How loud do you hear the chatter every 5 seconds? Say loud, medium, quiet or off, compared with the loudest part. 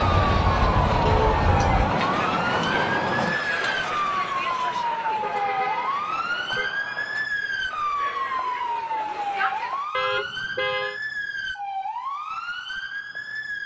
loud, medium, off.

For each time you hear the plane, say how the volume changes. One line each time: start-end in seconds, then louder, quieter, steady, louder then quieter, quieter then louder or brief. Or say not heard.
0.0-7.3 quieter.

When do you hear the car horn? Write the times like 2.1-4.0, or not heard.
0.0-1.8, 5.2-6.7, 9.9-11.0.